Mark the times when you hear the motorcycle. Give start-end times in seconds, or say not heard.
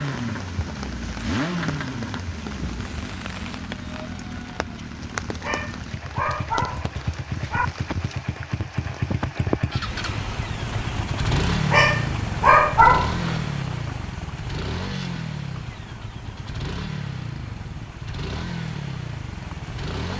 0.0-20.1.